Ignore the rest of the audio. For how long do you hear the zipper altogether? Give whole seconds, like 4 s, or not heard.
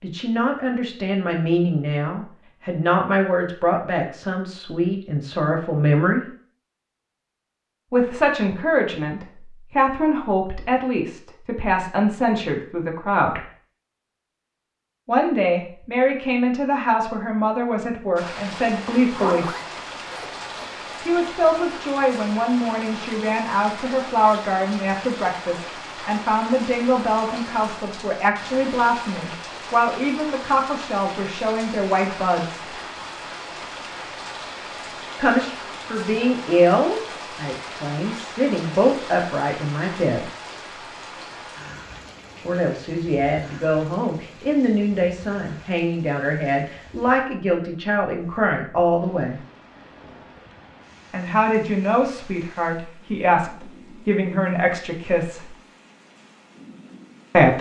2 s.